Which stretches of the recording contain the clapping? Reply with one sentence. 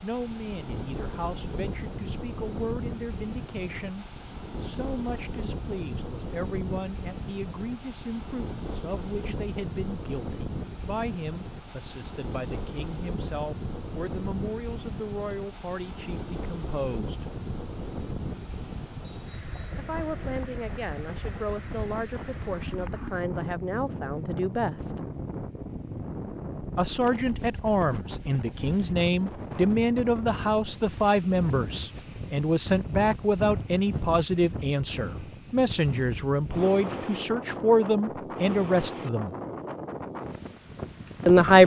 The clapping can't be heard in this clip.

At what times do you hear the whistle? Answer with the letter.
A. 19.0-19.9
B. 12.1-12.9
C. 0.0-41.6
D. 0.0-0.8
A.